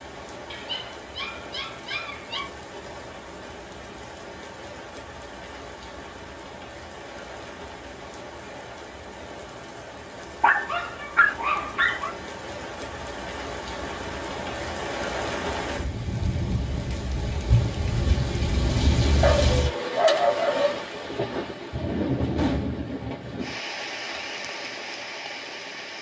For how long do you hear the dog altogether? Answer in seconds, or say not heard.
5 s.